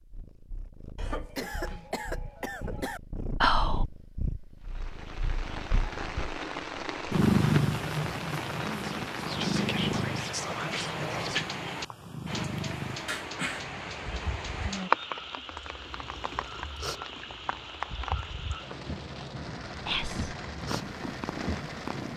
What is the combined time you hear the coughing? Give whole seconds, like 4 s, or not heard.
3 s.